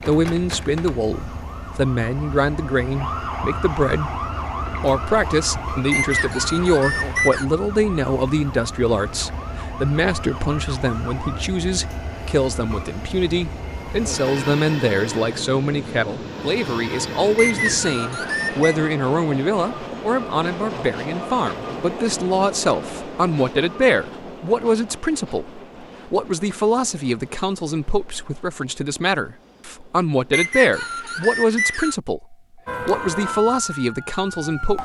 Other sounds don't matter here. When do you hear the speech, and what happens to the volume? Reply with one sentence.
You can hear the speech from 0.1 to 34.7 s, at a steady volume.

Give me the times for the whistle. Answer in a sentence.
The whistle can be heard from 5.9 to 7.5 s, from 17.4 to 18.8 s and from 30.3 to 31.9 s.